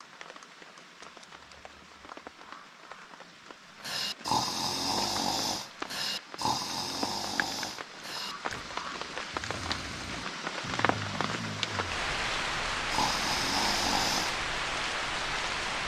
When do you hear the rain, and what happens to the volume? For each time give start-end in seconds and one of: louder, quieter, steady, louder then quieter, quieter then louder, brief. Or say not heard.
0.0-15.8 louder.